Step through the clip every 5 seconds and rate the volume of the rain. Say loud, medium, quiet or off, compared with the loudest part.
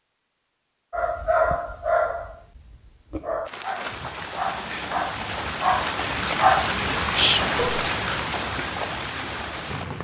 medium, loud.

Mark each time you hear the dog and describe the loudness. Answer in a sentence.
You can hear the dog from 0.9 to 7.8 s, getting quieter then louder.